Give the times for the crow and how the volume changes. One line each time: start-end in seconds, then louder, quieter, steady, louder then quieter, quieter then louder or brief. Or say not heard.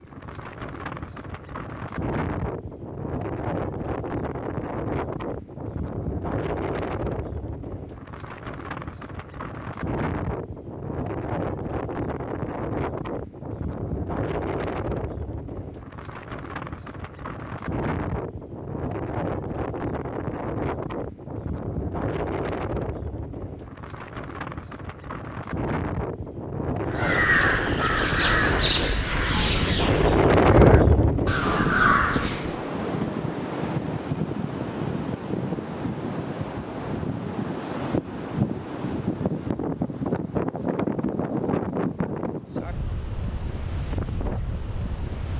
26.9-32.6 quieter then louder.